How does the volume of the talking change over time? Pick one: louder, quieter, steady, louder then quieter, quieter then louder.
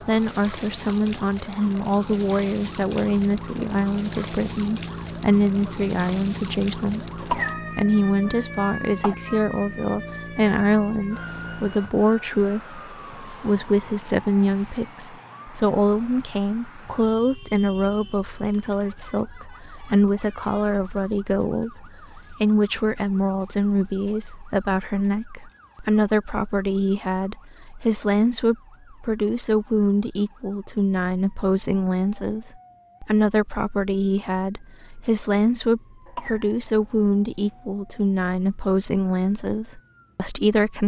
steady.